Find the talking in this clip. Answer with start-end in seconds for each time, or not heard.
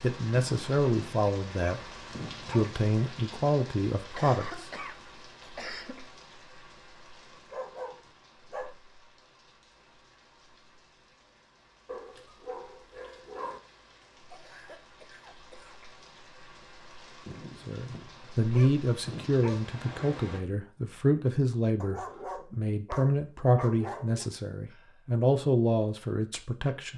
0.0-4.7, 17.6-26.9.